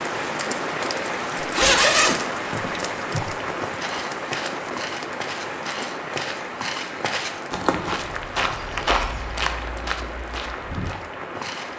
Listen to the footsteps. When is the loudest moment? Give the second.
9 s.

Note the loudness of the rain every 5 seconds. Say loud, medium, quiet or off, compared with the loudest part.
loud, medium, medium.